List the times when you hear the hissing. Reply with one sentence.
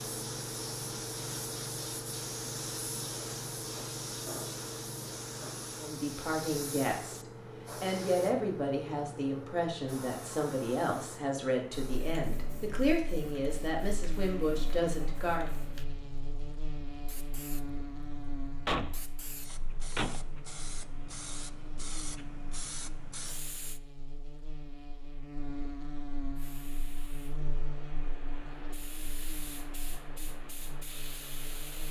You can hear the hissing from 0.0 to 23.8 s and from 26.4 to 31.8 s.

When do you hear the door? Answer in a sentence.
You can hear the door from 18.6 to 20.2 s.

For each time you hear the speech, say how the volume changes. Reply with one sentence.
The speech can be heard briefly from 5.8 to 7.2 s; and from 7.8 to 15.5 s, at a steady volume.